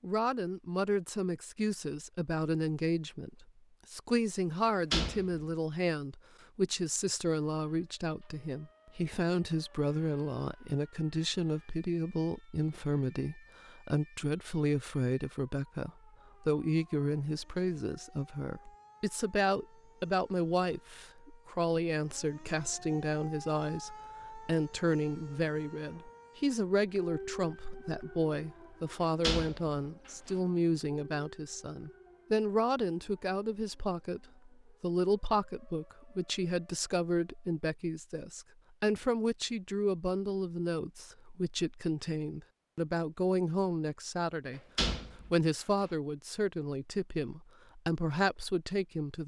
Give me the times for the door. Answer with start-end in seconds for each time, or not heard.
4.7-5.5, 29.2-30.1, 44.5-45.9.